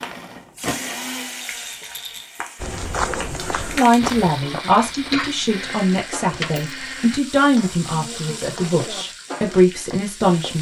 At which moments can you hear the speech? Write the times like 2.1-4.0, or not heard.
3.7-10.5.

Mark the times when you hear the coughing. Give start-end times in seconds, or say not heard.
4.6-5.8.